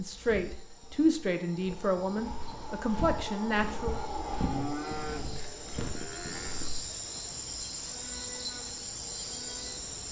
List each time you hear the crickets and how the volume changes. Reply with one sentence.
You can hear the crickets from 0.0 to 10.0 s, getting louder.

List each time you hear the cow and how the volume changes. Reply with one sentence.
You can hear the cow from 4.1 to 9.9 s, getting quieter.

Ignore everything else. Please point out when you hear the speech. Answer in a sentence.
You can hear the speech from 0.0 to 4.0 s.